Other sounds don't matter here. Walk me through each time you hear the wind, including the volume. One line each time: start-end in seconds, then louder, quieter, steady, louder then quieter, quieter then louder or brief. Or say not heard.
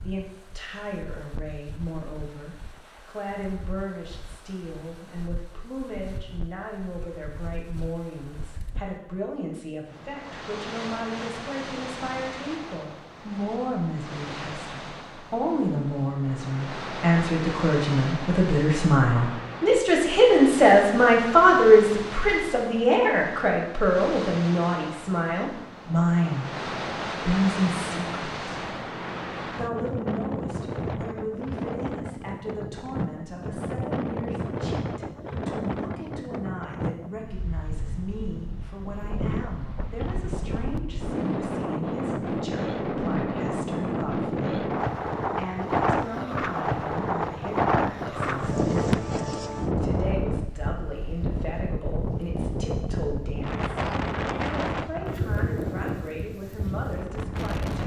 0.0-57.8 louder.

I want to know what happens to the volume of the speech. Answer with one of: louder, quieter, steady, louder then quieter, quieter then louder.
louder then quieter.